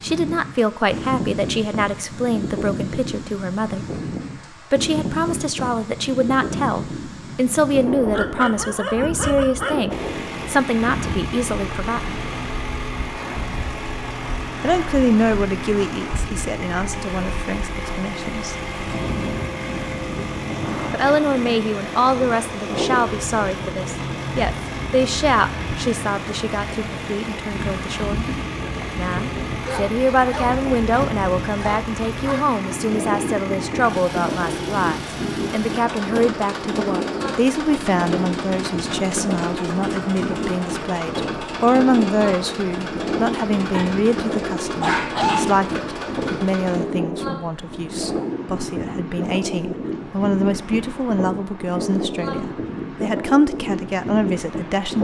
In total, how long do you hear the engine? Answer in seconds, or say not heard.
37 s.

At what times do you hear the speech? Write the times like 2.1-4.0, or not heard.
0.0-3.9, 4.7-12.2, 14.6-18.6, 20.9-28.2, 28.9-54.9.